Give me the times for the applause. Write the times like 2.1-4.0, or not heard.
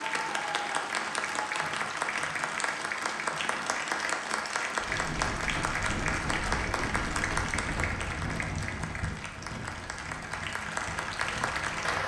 0.0-12.0.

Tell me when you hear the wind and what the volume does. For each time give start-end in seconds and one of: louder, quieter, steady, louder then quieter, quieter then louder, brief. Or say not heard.
4.8-12.0 quieter.